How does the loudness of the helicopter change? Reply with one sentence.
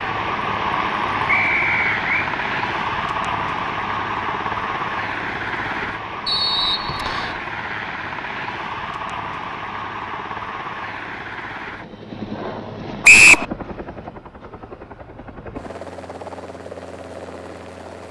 The loudness of the helicopter goes down.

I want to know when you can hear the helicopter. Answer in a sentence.
The helicopter can be heard from 0.0 to 18.0 s.